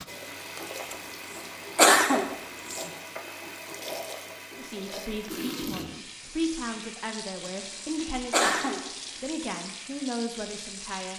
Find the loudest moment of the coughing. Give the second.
2 s.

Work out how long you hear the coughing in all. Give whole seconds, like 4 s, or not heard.
3 s.